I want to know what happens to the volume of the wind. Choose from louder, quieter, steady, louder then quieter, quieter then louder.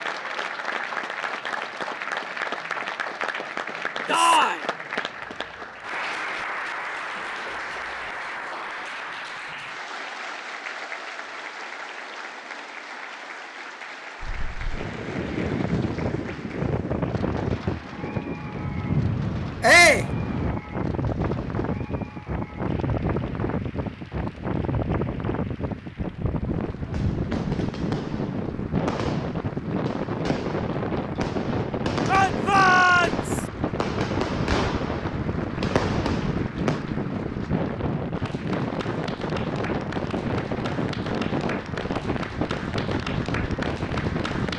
steady.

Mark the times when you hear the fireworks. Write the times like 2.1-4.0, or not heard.
26.9-36.9.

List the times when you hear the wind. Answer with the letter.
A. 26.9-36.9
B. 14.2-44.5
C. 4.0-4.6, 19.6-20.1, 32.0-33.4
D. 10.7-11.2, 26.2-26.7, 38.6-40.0
B.